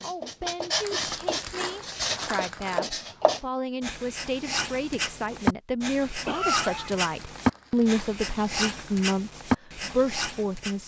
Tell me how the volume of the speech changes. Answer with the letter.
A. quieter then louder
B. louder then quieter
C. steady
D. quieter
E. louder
E.